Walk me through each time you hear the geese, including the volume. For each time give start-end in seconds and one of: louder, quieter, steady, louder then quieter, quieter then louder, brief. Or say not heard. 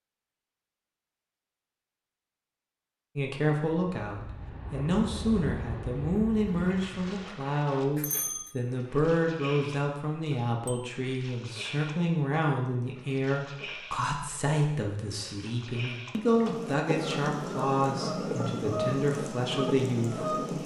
16.2-20.6 steady.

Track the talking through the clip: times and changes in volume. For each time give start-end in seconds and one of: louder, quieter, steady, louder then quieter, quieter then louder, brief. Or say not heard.
3.1-20.4 steady.